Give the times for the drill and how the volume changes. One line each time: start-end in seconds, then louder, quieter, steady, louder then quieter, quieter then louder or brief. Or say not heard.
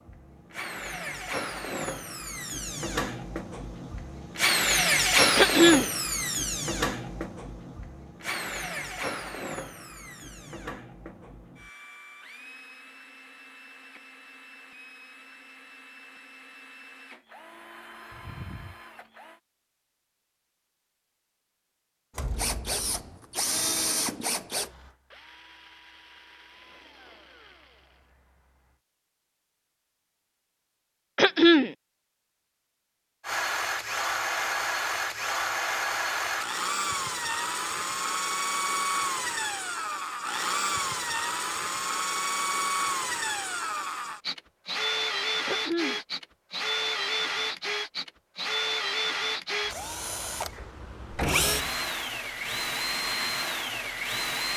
0.0-19.4 louder then quieter
22.4-28.8 quieter
33.2-54.5 steady.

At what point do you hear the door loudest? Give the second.
51 s.